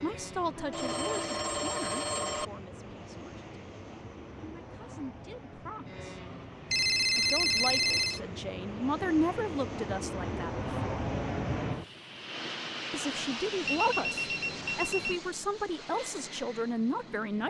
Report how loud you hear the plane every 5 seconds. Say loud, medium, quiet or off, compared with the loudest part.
medium, medium, loud, medium.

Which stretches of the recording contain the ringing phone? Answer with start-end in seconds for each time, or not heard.
0.6-2.5, 6.7-8.2, 13.7-15.2.